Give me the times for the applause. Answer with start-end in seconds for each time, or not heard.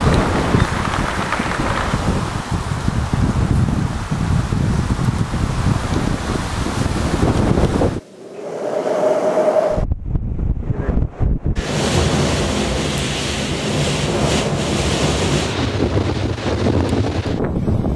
0.0-2.0.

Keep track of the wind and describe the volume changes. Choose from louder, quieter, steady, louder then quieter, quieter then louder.
steady.